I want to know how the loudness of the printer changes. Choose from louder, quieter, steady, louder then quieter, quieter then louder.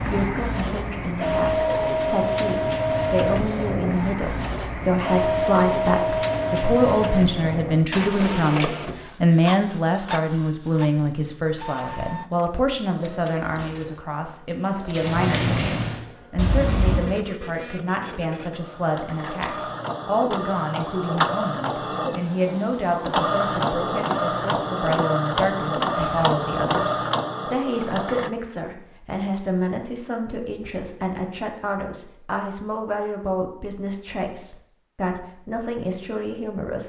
quieter then louder.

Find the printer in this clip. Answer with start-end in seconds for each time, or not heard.
0.0-28.3.